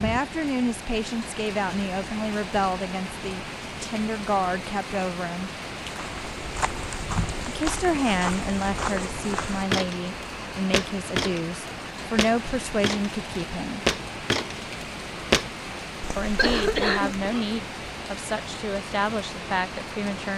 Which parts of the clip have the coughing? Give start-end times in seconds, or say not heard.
16.4-17.4.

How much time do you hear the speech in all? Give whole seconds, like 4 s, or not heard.
16 s.